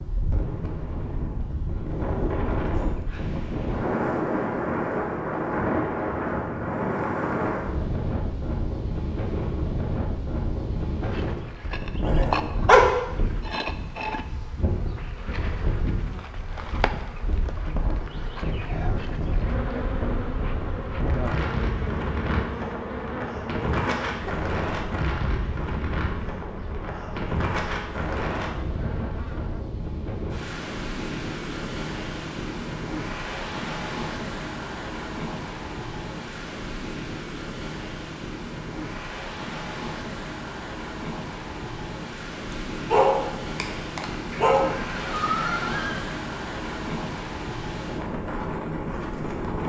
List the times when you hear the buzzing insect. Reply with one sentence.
The buzzing insect can be heard from 11.0 to 29.6 s.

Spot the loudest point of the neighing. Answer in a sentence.
The loudest moment of the neighing is at 45 seconds.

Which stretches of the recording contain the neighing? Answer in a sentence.
You can hear the neighing from 2.5 to 3.2 s and from 44.5 to 46.1 s.